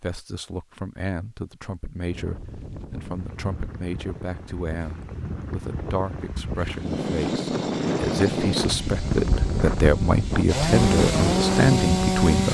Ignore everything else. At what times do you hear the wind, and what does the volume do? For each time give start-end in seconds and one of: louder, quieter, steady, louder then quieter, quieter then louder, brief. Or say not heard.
2.0-12.5 louder.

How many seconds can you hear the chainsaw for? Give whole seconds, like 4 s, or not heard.
6 s.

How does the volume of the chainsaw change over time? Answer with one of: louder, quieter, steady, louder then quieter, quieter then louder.
louder.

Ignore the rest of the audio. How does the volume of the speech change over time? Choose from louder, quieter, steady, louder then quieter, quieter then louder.
louder.